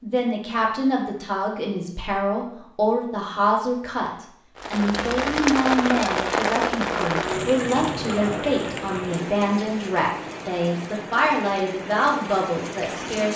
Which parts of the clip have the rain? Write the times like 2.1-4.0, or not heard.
4.5-13.3.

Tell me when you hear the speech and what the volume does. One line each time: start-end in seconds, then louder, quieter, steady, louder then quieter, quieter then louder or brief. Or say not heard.
0.0-13.3 steady.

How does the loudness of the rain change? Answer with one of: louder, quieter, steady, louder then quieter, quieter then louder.
quieter.